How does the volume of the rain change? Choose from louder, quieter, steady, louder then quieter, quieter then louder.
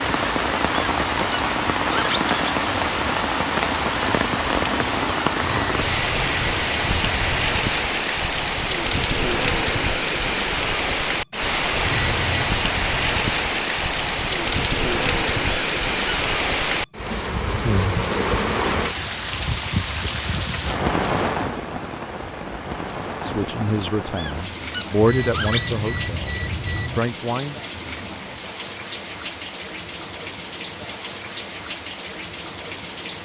quieter.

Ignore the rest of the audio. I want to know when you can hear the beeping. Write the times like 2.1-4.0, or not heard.
5.4-7.2, 11.8-12.6, 25.0-27.0.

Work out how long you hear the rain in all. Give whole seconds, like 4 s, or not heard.
33 s.